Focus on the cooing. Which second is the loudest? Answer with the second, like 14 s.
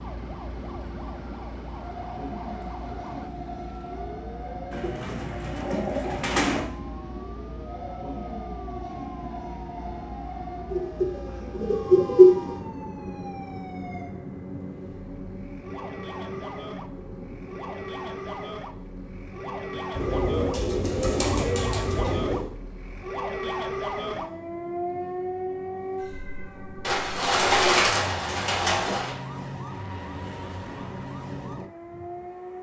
12 s.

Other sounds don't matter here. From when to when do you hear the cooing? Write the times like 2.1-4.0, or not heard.
4.7-6.6, 10.7-12.6, 19.9-22.4, 26.8-29.1.